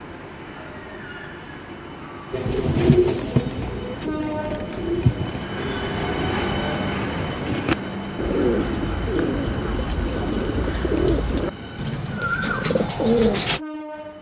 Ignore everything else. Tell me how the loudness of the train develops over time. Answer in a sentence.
The volume of the train goes up, then down.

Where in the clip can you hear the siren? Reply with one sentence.
The siren can't be heard in this clip.